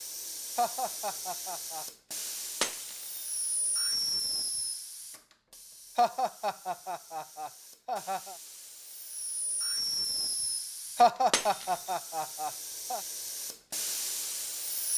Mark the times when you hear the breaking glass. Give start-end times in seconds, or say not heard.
2.6-3.2, 11.3-11.9.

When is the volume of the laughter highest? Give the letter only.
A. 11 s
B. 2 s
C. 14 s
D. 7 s
A.